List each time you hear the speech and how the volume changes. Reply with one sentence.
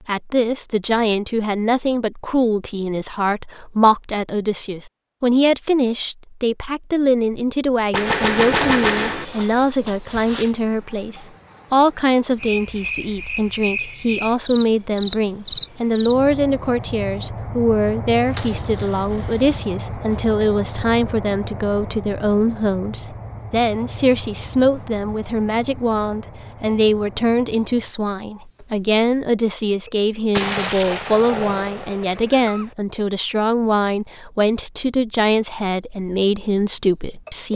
You can hear the speech from 0.1 to 37.5 s, at a steady volume.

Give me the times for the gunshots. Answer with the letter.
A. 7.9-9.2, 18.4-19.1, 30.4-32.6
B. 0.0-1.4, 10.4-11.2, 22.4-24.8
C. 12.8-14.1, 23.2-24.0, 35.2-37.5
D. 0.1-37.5
A.